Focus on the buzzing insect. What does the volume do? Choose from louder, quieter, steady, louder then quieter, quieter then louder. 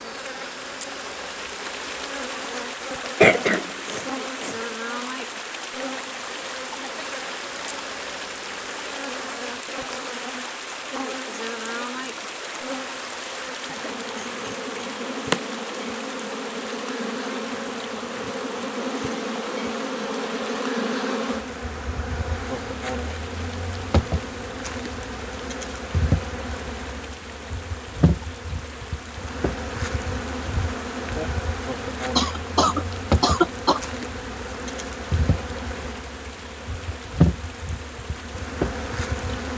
louder.